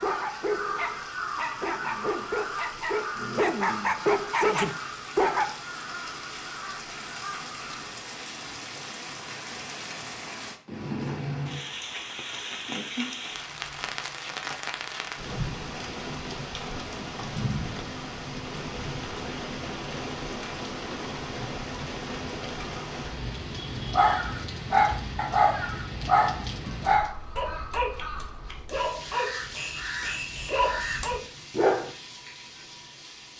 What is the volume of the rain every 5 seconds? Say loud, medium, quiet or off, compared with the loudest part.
medium, medium, loud, loud, loud, medium, medium.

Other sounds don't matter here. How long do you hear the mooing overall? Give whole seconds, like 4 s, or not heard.
not heard.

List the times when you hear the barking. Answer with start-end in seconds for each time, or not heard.
0.0-5.5, 23.9-31.9.